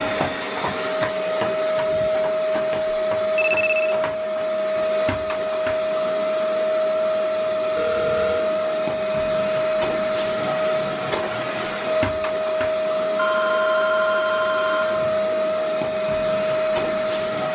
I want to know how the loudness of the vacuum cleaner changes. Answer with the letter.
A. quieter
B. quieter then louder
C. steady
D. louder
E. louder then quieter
C.